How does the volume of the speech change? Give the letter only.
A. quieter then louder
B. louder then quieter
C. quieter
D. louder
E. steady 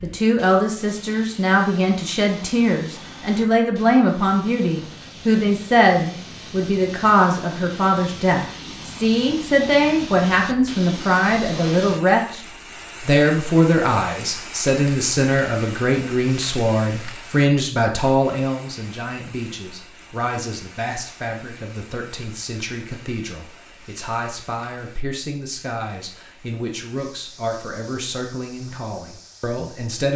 C.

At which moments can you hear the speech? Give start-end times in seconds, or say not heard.
0.0-12.4, 13.0-30.1.